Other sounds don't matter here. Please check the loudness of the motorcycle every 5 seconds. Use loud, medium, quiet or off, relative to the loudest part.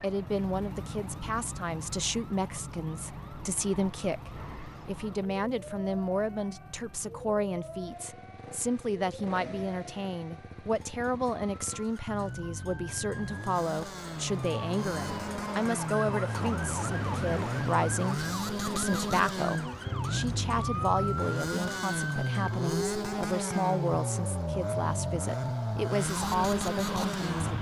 medium, quiet, medium, loud, loud, loud.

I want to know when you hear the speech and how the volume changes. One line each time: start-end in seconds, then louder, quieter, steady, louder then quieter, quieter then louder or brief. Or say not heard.
0.0-27.5 steady.